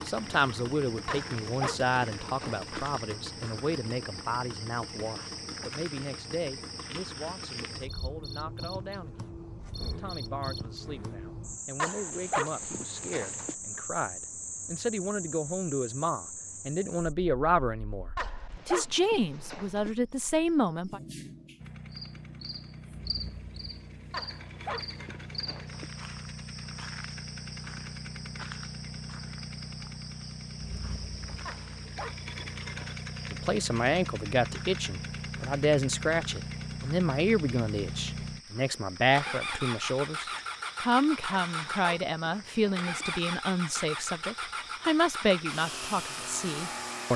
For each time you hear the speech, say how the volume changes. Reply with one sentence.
You can hear the speech from 0.1 to 18.1 s, getting quieter then louder; briefly from 18.6 to 21.0 s; and from 33.3 to 47.1 s, at a steady volume.